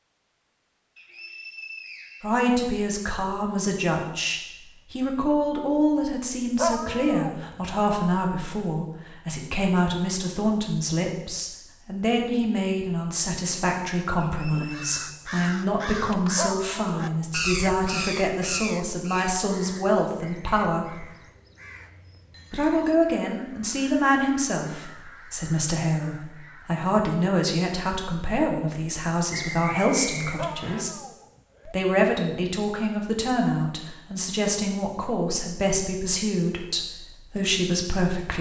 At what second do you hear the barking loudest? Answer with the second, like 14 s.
7 s.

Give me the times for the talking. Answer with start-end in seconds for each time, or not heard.
2.2-21.1, 22.5-30.9, 31.6-38.3.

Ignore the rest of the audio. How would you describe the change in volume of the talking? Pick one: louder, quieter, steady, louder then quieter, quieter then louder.
steady.